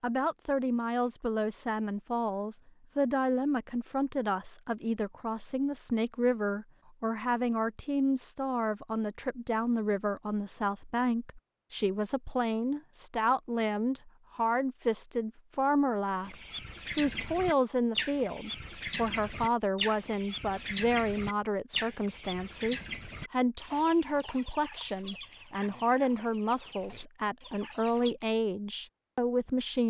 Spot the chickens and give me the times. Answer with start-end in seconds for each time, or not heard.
16.2-28.1.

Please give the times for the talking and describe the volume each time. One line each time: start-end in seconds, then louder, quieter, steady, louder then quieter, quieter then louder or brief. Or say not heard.
0.0-29.8 steady.